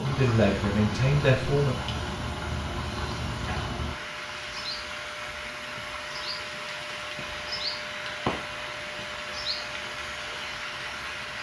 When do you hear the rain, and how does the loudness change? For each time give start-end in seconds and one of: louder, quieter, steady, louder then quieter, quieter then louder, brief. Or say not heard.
0.0-11.3 steady.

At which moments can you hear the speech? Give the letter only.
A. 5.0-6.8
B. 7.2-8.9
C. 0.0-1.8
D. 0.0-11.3
C.